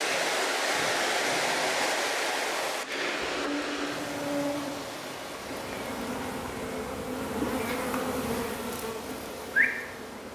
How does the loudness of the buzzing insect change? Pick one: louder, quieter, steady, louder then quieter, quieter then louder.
louder.